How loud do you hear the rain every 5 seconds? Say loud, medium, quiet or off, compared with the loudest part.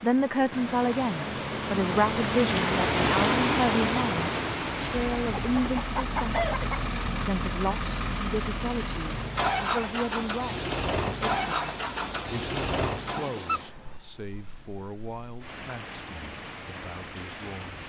loud, medium, quiet, quiet.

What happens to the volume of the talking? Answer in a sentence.
The loudness of the talking goes down.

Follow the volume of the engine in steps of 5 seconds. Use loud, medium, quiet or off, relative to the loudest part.
off, loud, loud, off.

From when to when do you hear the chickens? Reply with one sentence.
The chickens can be heard from 5.2 to 6.9 s and from 13.4 to 14.0 s.